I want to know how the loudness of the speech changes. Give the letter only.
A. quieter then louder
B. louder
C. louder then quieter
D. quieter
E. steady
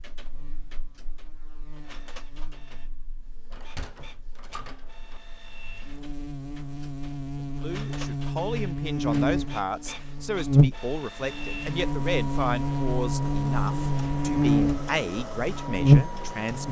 E.